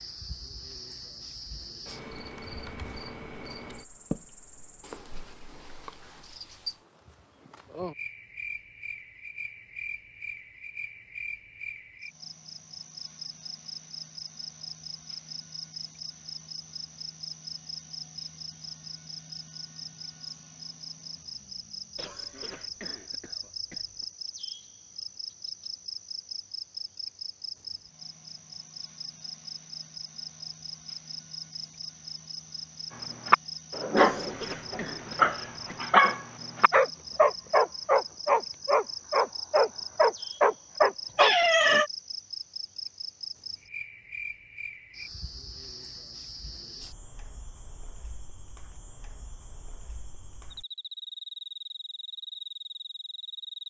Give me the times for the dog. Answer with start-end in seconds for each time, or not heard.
33.2-41.4.